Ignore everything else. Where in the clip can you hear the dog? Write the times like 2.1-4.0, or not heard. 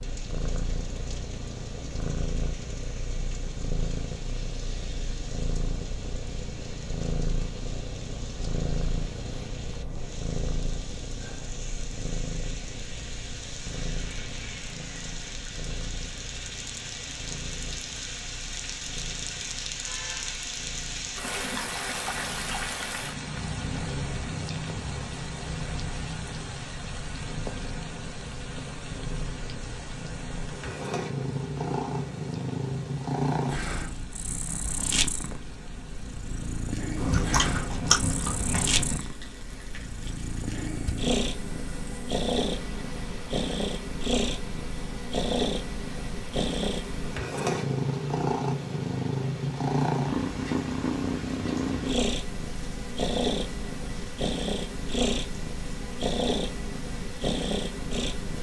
not heard.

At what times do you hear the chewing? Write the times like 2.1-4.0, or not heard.
37.0-39.0.